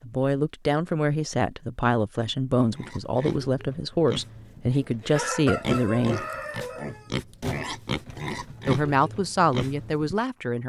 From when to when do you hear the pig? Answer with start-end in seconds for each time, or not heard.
2.7-10.2.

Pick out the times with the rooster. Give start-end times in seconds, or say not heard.
4.8-7.1.